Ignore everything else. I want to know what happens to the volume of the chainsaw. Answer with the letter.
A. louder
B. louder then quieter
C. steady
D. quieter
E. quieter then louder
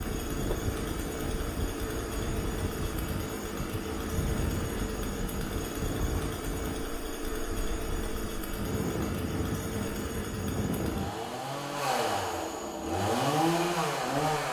A.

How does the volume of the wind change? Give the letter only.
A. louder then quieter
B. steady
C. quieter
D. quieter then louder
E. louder
D.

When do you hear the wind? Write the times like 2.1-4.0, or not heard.
0.0-11.1.